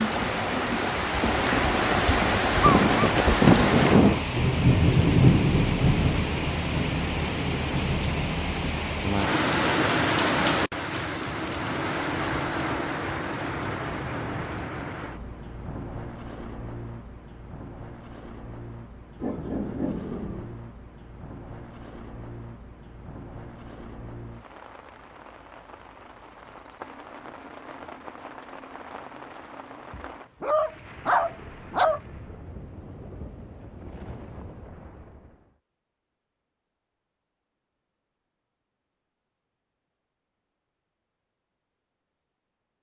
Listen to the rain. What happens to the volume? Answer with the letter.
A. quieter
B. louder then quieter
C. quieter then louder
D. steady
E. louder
A.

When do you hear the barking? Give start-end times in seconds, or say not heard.
2.6-4.2, 19.2-20.6, 29.9-32.0.